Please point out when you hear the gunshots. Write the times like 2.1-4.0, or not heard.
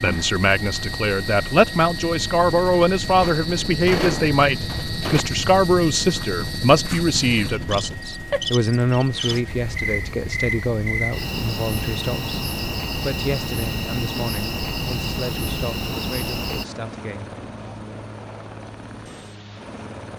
3.2-5.2.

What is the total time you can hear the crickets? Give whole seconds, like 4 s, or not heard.
17 s.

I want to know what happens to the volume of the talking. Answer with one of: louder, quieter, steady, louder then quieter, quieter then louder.
quieter.